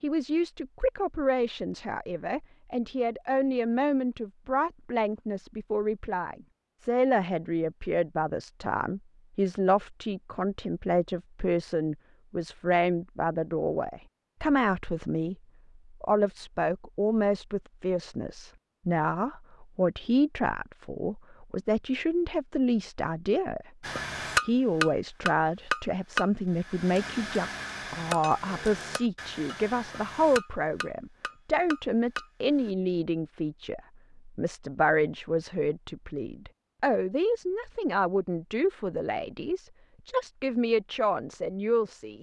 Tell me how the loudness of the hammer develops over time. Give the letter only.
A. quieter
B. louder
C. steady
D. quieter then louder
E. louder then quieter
A.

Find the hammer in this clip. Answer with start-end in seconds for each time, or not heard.
23.8-32.7.